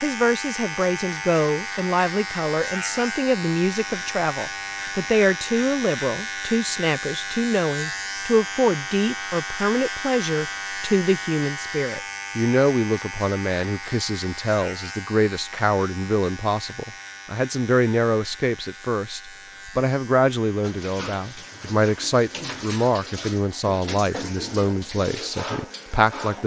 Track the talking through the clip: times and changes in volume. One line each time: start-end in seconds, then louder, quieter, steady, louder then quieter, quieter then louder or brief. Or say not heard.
0.0-26.4 steady.